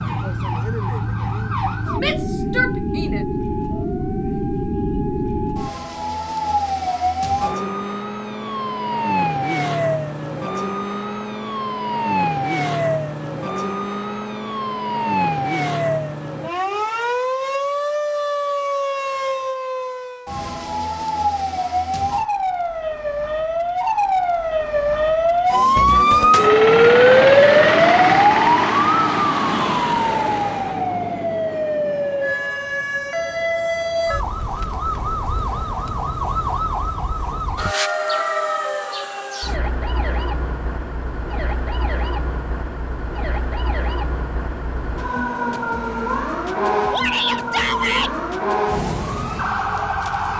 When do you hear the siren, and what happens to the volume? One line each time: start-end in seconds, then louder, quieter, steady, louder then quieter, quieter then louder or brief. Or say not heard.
0.0-50.3 louder then quieter.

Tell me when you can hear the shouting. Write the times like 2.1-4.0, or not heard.
1.9-3.2, 46.9-48.1.